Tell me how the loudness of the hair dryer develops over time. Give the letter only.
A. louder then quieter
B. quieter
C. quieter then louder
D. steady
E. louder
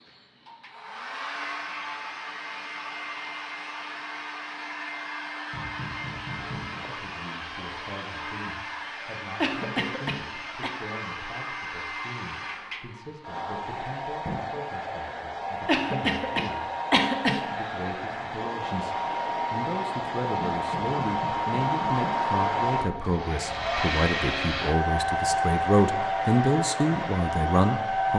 E.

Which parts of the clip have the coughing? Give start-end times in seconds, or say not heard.
9.4-10.7, 15.7-17.4.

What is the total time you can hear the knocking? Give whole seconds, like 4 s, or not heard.
4 s.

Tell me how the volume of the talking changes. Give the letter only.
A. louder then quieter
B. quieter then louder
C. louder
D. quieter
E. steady
C.